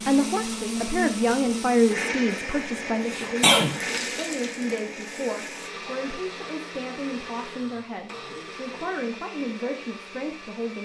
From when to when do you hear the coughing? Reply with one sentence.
You can hear the coughing from 2.3 to 3.8 s.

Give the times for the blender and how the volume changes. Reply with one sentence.
You can hear the blender from 0.0 to 10.8 s, getting quieter.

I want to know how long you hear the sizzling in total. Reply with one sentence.
The sizzling can be heard for 2 seconds in total.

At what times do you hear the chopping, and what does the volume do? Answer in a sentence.
The chopping can't be heard in this clip.